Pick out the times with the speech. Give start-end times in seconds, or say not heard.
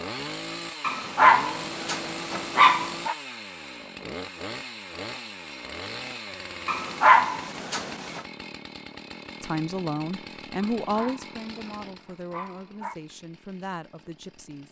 9.4-14.6.